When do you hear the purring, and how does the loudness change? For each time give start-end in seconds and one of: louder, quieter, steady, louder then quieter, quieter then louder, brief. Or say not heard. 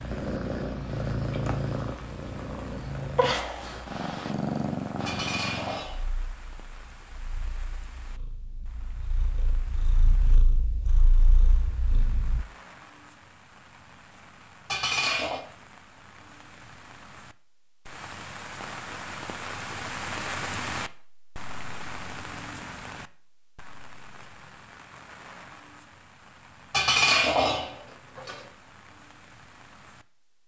0.0-12.4 quieter then louder.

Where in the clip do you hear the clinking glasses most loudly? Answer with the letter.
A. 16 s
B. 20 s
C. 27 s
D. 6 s
C.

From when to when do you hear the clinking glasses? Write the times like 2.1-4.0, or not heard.
5.0-6.1, 14.7-15.4, 26.7-28.4.